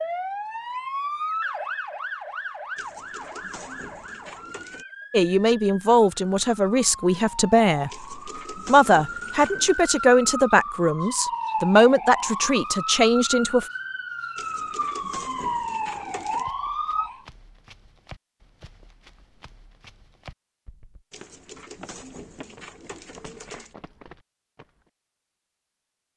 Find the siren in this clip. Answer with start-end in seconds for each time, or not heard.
0.0-17.2.